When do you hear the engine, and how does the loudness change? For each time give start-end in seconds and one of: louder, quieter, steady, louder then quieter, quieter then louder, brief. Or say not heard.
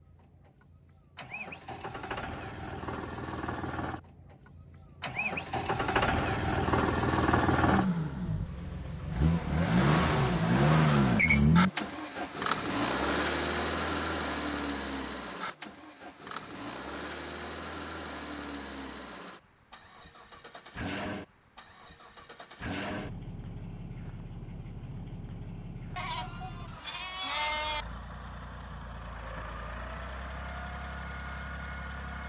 0.0-32.2 louder then quieter.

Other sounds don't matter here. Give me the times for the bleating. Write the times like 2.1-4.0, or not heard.
25.9-27.9.